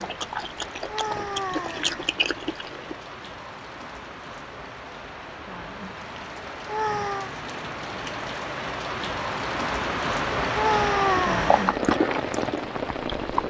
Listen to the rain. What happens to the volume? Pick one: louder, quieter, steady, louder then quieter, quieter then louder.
louder.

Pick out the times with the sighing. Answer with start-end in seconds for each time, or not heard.
0.8-2.0, 6.7-7.3, 10.5-11.7.